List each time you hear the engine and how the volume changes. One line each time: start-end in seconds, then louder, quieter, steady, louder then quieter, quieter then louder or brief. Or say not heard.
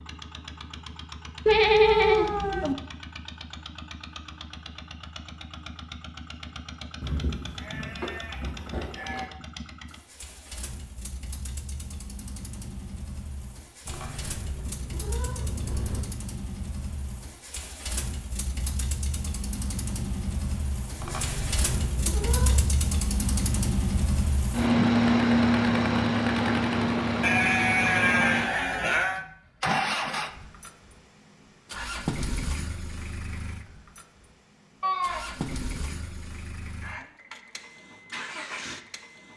0.0-39.3 louder then quieter.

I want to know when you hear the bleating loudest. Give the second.
2 s.